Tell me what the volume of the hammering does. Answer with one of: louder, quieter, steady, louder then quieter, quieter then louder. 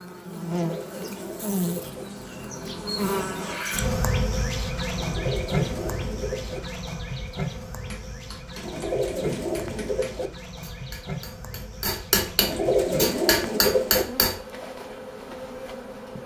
louder.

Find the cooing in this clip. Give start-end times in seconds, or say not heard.
0.6-2.0, 5.0-6.6, 8.6-10.3, 12.3-14.1.